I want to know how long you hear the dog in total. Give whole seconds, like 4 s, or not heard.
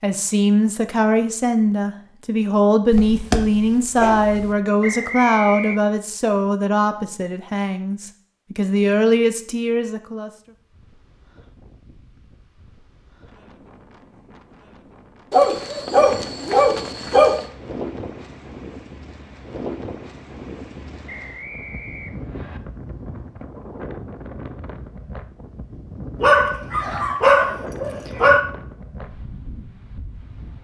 6 s.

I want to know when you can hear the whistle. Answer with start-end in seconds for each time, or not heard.
4.8-5.8, 21.1-22.6.